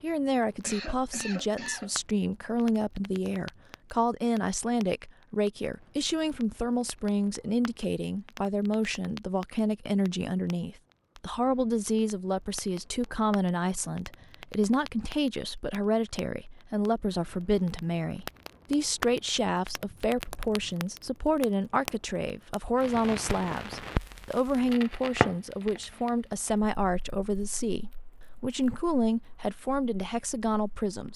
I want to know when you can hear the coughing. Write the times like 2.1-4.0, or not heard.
0.6-1.9.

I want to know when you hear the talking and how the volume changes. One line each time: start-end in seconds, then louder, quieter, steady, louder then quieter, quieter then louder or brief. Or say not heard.
0.0-31.1 steady.